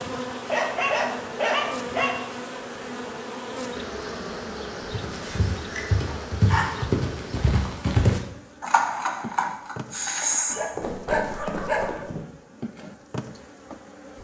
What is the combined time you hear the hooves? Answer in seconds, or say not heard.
7 s.